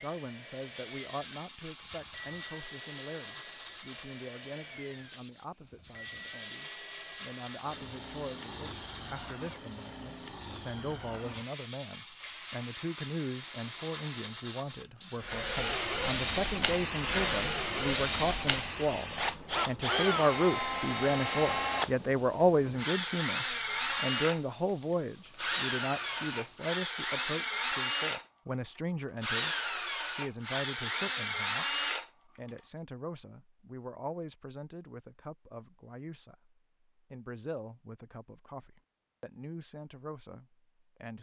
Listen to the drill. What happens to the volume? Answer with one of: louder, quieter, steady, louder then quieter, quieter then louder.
louder.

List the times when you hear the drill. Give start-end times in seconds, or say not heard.
0.0-32.5.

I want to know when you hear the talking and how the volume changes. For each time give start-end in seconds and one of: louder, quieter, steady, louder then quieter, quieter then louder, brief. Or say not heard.
0.0-41.1 louder then quieter.